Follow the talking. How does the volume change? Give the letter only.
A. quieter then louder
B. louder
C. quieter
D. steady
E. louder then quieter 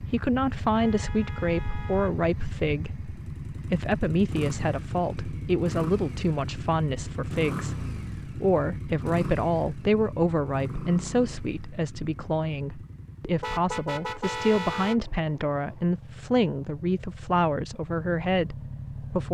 D.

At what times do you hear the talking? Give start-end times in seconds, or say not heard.
0.0-19.2.